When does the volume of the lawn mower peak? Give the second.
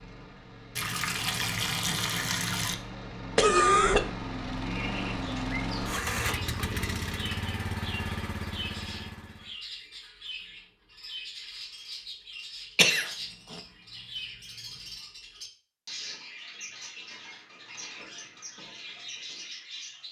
6 s.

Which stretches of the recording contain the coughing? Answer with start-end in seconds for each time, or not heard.
3.4-4.1, 12.8-13.6.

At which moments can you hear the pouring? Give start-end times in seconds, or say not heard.
0.8-2.8.